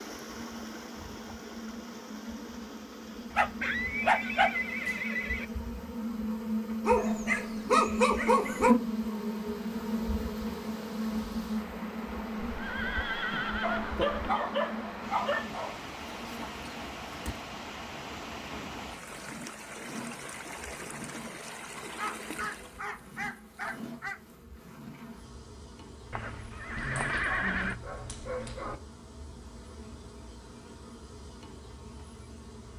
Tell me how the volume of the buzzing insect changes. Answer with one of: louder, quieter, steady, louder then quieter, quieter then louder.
louder then quieter.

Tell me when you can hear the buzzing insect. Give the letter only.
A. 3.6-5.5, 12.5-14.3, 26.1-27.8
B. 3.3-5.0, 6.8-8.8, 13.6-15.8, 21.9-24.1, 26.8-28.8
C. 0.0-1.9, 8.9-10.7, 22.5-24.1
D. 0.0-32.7
D.